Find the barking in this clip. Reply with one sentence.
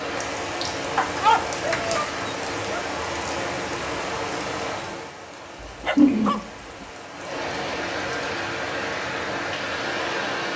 The barking can be heard from 0.9 to 2.9 s and from 5.6 to 6.8 s.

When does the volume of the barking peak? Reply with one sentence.
The volume of the barking peaks at 1 second.